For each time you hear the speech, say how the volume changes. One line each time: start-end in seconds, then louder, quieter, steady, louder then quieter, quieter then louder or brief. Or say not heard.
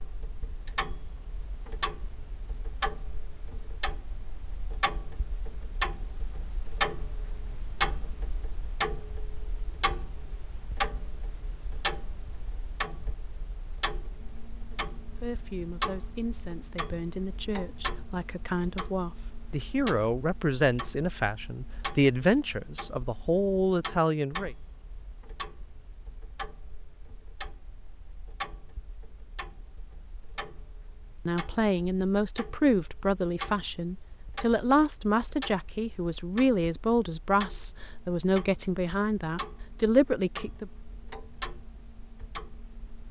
15.2-24.5 louder
31.2-40.7 steady.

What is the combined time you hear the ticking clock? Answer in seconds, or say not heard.
43 s.